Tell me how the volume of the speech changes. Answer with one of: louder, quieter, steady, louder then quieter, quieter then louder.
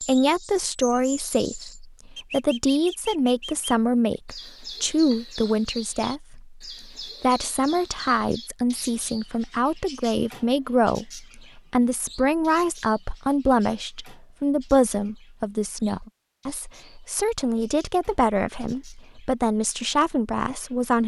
steady.